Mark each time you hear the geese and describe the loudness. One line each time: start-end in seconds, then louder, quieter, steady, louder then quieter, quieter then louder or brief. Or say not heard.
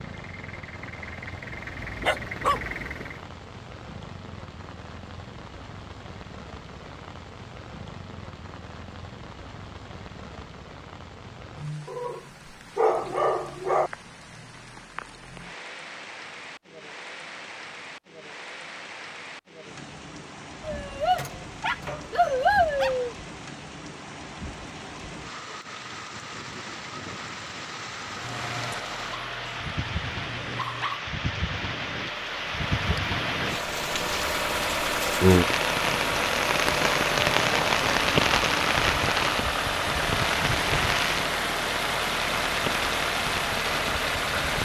not heard.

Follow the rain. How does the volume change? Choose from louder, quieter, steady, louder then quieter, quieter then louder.
louder.